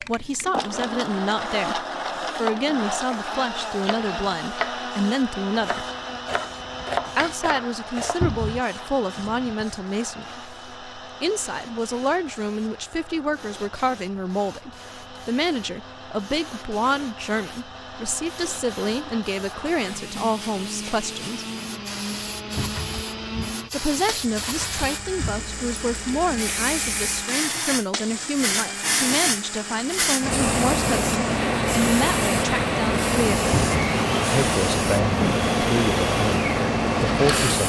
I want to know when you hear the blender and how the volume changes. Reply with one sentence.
You can hear the blender from 0.0 to 37.6 s, getting quieter then louder.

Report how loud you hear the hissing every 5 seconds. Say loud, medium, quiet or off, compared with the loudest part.
quiet, quiet, quiet, quiet, quiet, medium, loud, loud.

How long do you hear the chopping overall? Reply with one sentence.
The chopping can be heard for 6 seconds in total.